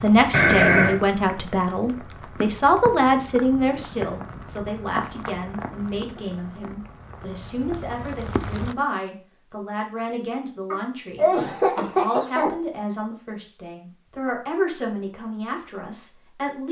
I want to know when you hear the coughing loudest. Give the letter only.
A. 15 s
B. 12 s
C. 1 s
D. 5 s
C.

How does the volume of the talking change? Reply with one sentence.
The loudness of the talking goes down.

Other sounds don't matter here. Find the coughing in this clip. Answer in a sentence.
You can hear the coughing from 0.3 to 1.0 s and from 10.7 to 12.5 s.